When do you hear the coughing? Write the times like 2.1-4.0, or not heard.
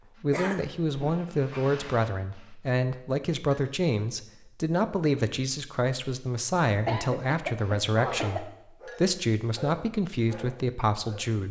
0.3-1.7, 6.8-8.4.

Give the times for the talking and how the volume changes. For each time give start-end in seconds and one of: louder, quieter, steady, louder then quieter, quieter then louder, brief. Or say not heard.
0.2-11.4 steady.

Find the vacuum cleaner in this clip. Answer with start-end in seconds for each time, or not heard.
not heard.